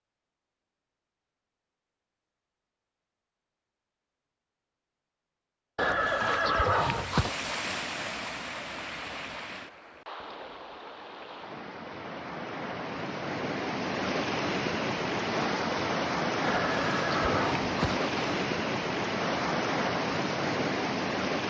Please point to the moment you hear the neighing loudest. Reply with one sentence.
The loudest moment of the neighing is at 7 seconds.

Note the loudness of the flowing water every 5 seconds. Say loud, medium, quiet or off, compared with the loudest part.
off, medium, medium, loud, loud.